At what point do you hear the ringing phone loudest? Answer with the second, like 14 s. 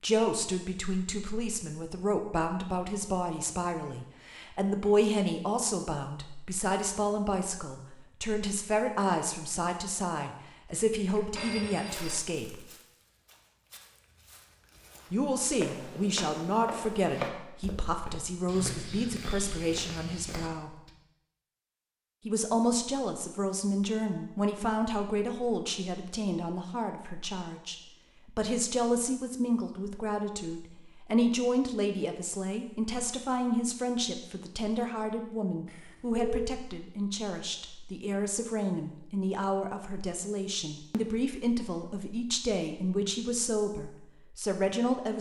36 s.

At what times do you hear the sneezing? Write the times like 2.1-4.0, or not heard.
not heard.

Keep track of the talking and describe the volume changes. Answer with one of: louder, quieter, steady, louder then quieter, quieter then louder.
steady.